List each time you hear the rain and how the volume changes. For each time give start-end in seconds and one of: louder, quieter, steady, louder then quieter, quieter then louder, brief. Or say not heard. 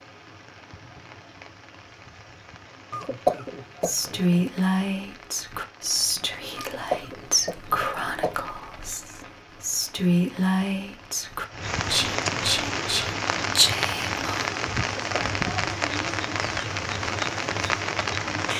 0.0-18.5 louder.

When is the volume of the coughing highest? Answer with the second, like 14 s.
3 s.